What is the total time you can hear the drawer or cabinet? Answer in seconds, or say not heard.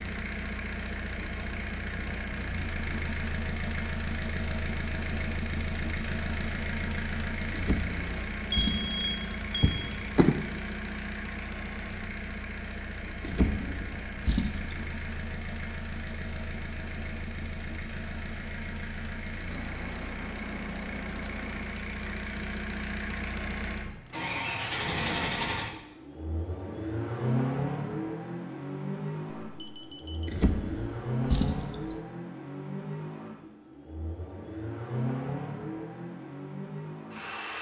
6 s.